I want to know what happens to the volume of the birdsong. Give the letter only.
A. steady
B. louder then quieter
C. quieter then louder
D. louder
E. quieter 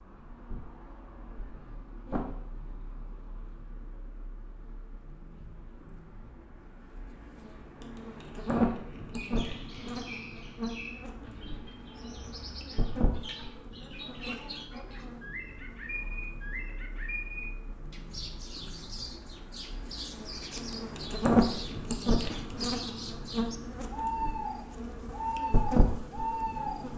D.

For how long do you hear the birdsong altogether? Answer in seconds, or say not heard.
19 s.